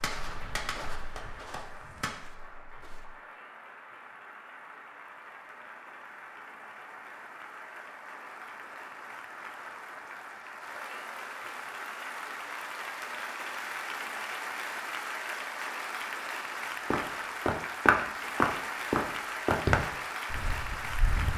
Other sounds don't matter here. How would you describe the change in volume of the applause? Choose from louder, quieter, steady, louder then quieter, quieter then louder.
louder.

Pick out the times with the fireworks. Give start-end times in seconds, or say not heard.
0.0-2.1.